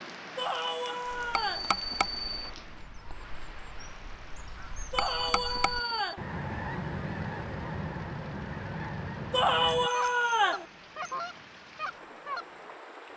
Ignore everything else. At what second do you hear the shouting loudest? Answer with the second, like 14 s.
10 s.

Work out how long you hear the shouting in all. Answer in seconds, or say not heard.
4 s.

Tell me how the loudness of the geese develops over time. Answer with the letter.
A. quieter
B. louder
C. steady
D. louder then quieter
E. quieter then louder
B.